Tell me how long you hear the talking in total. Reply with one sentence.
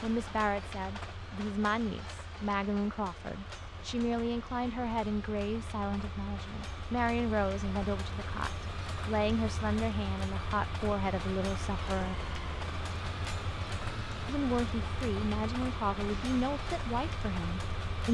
You can hear the talking for 16 seconds altogether.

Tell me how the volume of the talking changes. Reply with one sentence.
The volume of the talking stays about the same.